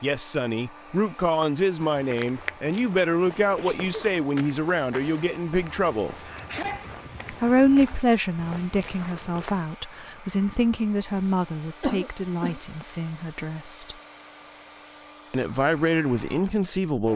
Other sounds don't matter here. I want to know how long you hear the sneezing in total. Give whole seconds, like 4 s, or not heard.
2 s.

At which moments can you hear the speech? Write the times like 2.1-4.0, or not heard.
0.0-6.2, 7.3-13.9, 15.3-17.1.